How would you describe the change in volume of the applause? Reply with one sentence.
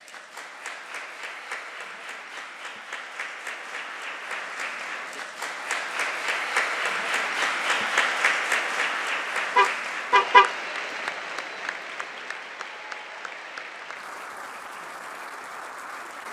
The volume of the applause goes up, then down.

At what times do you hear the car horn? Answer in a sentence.
The car horn can be heard from 9.6 to 10.6 s.